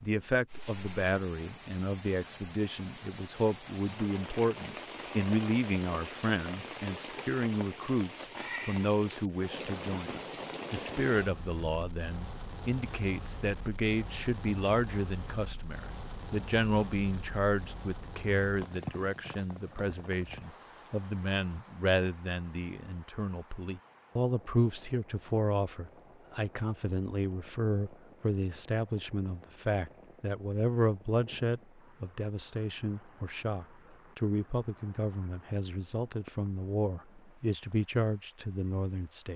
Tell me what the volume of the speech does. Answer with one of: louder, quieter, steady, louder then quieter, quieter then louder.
steady.